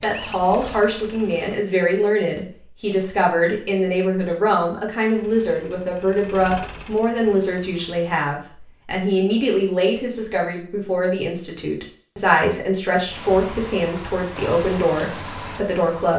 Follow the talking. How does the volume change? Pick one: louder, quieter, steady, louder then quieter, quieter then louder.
steady.